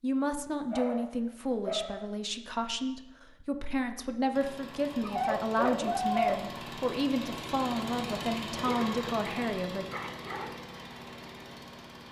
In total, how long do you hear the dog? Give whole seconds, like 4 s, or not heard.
5 s.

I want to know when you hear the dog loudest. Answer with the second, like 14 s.
6 s.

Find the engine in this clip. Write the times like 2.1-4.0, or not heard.
4.3-12.0.